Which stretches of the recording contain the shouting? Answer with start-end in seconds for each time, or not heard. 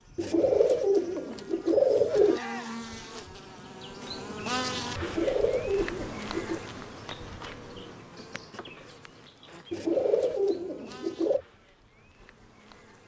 2.3-2.9.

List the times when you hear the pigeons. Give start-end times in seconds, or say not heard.
0.1-2.4, 5.0-6.6, 9.7-11.4.